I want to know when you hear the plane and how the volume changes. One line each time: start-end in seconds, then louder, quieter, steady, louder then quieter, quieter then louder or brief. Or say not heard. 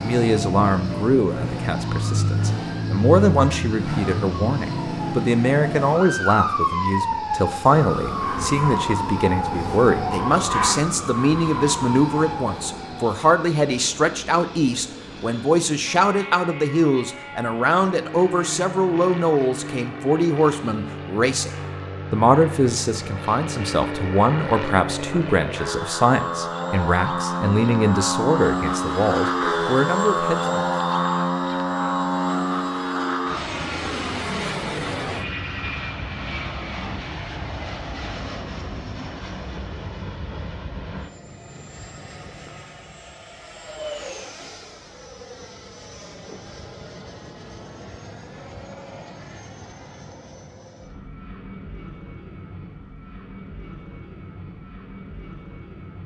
0.0-56.0 louder then quieter.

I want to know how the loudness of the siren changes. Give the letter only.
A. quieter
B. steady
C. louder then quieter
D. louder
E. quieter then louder
B.